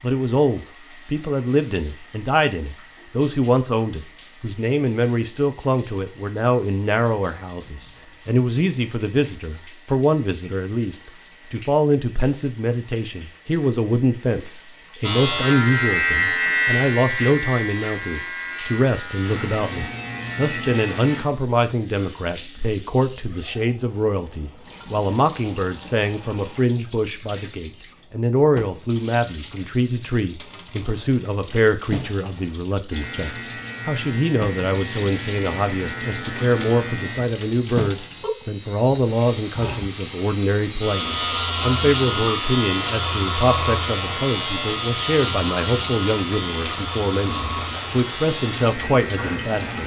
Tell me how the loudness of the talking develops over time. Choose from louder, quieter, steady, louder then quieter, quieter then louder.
steady.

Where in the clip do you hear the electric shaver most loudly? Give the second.
16 s.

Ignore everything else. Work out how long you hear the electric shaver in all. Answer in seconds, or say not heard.
23 s.